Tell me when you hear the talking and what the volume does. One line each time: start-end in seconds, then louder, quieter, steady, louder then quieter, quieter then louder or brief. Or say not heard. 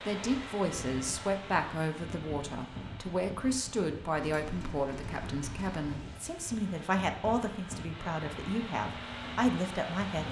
0.1-10.2 steady.